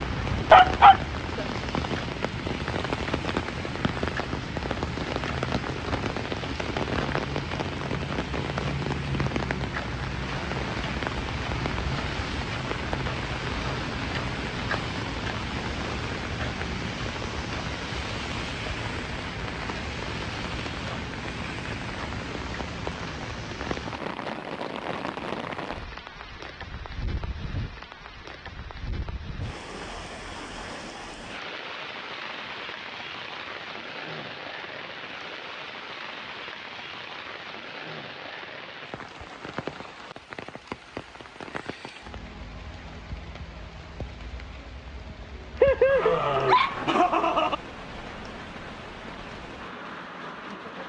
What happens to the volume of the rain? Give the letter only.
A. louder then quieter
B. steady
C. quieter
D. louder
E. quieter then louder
C.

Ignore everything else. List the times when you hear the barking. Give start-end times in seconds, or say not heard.
0.1-1.4, 45.6-47.5.